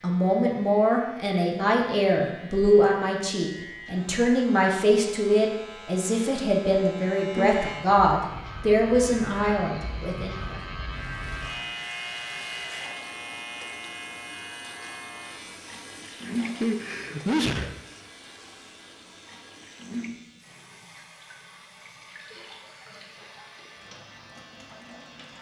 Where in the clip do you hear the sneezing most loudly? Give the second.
17 s.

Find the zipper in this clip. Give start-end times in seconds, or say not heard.
not heard.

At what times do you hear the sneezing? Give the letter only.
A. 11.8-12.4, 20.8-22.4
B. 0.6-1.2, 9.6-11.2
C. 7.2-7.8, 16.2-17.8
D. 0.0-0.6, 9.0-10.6
C.